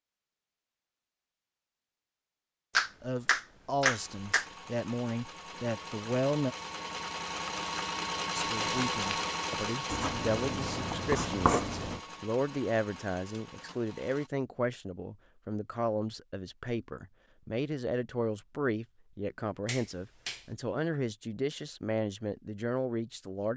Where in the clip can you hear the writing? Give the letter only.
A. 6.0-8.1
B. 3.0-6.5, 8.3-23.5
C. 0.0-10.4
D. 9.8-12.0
D.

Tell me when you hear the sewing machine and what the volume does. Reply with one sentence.
You can hear the sewing machine from 3.9 to 14.3 s, getting louder then quieter.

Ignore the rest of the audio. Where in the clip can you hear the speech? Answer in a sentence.
The speech can be heard from 3.0 to 6.5 s and from 8.3 to 23.5 s.